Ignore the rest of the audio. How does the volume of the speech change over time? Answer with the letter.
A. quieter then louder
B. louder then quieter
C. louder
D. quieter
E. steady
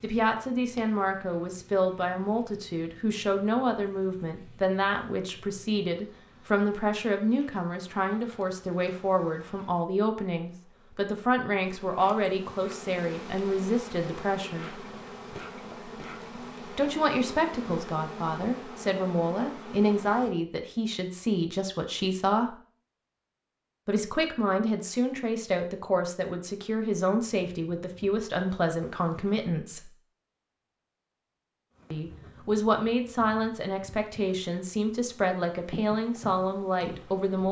E.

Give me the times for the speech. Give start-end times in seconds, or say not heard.
0.0-14.8, 16.8-22.6, 23.9-29.9, 31.9-37.4.